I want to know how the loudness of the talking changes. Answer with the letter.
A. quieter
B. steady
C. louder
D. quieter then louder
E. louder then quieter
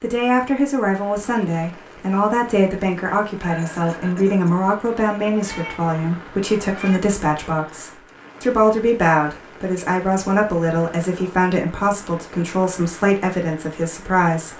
B.